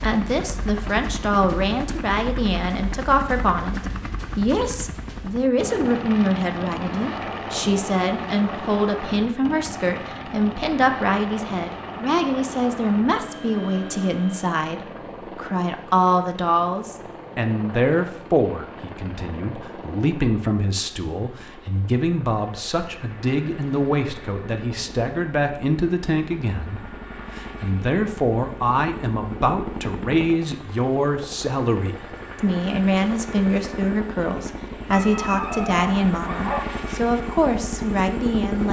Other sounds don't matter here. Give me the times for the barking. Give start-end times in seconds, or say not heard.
34.9-36.7.